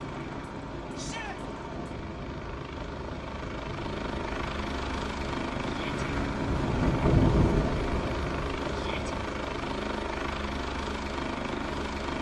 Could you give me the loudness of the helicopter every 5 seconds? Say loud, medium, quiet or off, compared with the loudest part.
medium, loud, loud.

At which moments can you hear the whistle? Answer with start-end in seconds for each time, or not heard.
not heard.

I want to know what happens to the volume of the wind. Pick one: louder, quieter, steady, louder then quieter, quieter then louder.
louder.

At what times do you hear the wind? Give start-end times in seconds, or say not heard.
0.0-9.3.